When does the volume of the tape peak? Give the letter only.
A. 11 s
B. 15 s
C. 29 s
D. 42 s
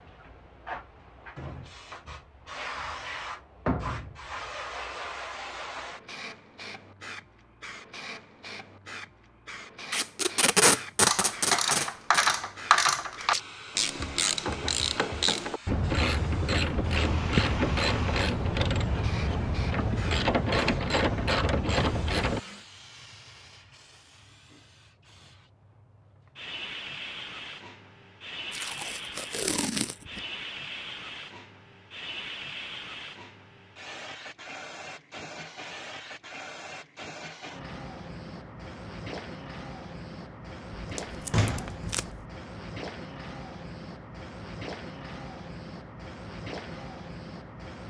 A.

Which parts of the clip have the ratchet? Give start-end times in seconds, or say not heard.
11.1-22.4.